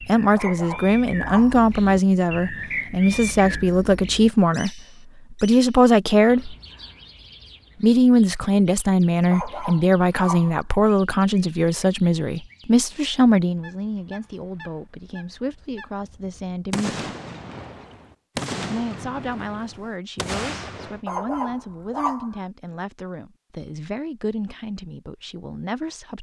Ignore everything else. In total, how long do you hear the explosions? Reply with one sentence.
The explosions can be heard for 4 seconds in total.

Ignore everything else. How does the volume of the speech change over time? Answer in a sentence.
The loudness of the speech goes down.